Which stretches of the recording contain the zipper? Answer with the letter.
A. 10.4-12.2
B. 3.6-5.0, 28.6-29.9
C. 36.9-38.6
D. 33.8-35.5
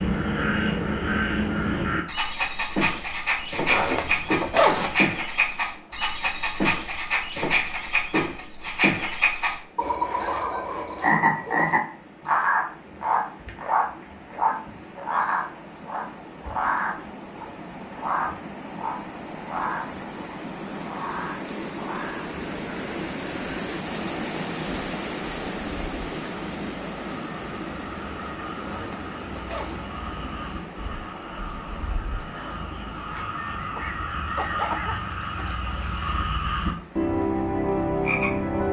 B.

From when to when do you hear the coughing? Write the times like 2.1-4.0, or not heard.
33.8-35.5.